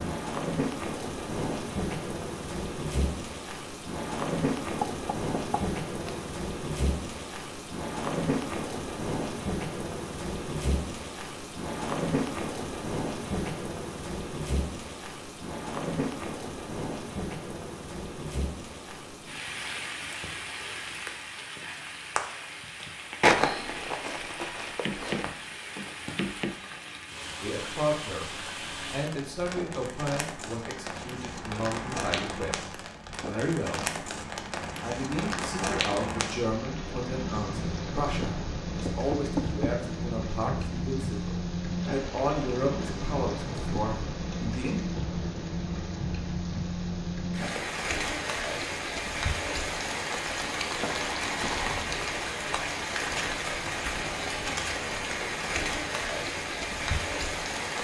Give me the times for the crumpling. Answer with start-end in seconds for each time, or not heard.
23.2-25.2, 50.7-51.9.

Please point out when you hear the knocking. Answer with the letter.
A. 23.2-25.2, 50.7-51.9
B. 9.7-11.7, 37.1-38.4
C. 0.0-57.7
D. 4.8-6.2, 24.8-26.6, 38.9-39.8
D.